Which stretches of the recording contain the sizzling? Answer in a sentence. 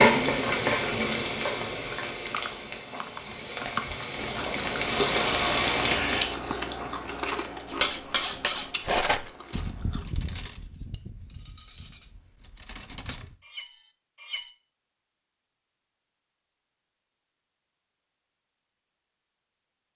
You can hear the sizzling from 0.0 to 6.3 s.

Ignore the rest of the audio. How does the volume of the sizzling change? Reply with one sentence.
The loudness of the sizzling goes down, then up.